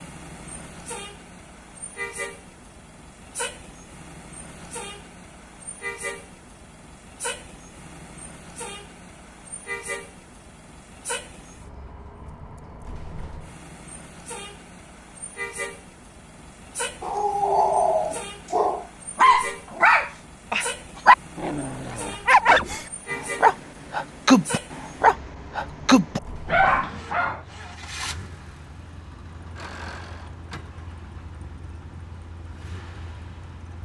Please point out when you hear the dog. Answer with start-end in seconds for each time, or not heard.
17.0-27.4.